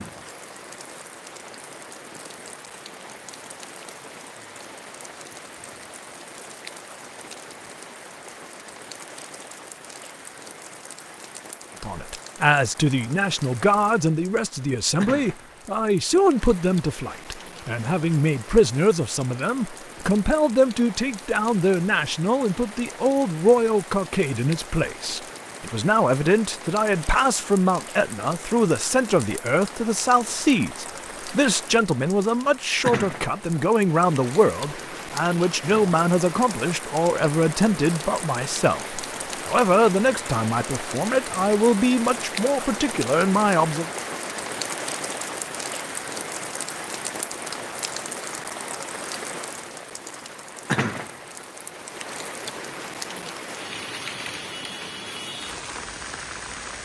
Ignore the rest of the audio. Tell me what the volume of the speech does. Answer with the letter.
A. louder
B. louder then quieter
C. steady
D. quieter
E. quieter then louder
C.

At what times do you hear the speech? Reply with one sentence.
The speech can be heard from 11.8 to 43.9 s.